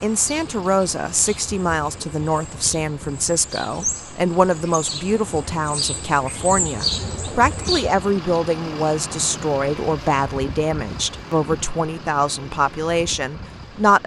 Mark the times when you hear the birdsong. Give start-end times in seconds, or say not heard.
0.0-8.1.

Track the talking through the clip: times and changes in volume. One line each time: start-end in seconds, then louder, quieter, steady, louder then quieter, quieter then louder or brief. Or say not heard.
0.0-14.0 steady.